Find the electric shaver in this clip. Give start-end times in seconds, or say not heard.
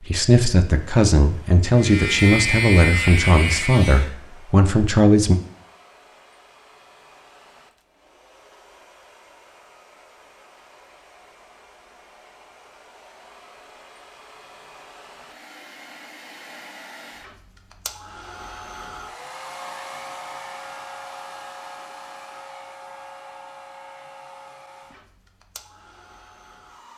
1.8-4.1.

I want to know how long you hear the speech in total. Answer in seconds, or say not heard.
5 s.